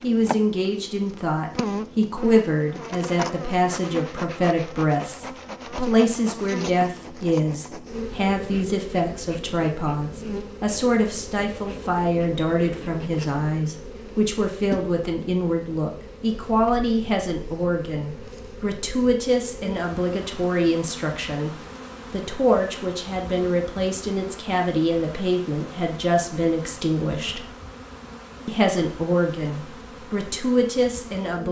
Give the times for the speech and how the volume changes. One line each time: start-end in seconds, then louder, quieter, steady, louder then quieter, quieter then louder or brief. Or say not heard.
0.0-27.4 steady
28.4-31.4 brief.